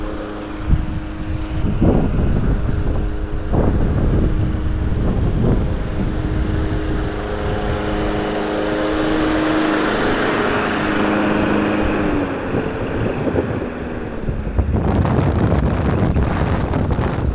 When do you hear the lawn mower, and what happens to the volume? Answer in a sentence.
The lawn mower can be heard from 0.0 to 17.2 s, getting louder then quieter.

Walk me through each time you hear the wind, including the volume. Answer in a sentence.
You can hear the wind from 0.0 to 17.2 s, getting quieter then louder.